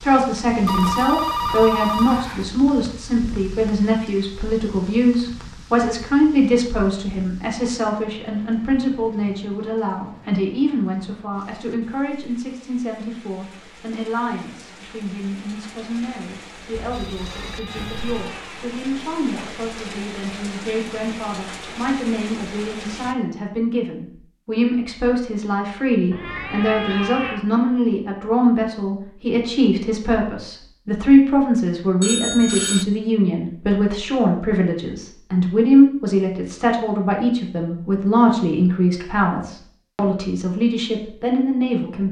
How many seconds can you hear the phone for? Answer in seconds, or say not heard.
4 s.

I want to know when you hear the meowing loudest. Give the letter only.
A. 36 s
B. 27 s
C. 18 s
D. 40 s
B.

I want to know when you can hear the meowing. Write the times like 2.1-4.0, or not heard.
17.2-18.8, 26.1-27.4.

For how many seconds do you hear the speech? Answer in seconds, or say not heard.
42 s.